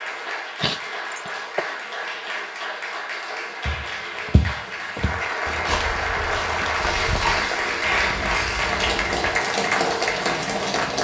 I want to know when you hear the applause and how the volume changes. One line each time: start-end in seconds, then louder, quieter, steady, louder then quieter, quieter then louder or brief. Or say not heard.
0.0-11.0 louder.